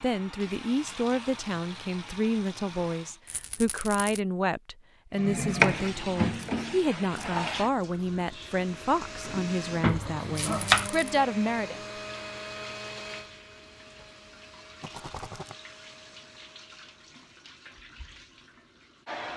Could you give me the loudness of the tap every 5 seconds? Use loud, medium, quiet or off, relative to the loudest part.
medium, loud, medium, quiet.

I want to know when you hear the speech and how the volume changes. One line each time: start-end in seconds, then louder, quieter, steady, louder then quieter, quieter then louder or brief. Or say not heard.
0.0-11.8 steady.